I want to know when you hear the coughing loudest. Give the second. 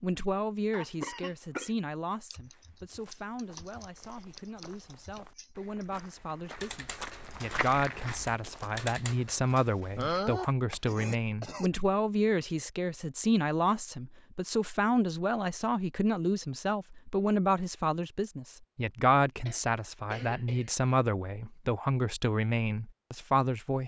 10 s.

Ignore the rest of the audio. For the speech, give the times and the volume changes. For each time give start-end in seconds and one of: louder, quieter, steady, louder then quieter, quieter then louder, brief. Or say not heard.
0.0-23.8 louder.